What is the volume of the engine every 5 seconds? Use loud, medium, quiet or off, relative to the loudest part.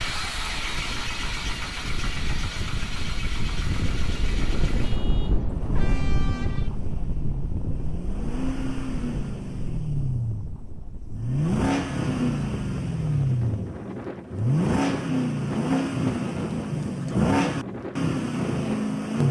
medium, medium, loud, loud.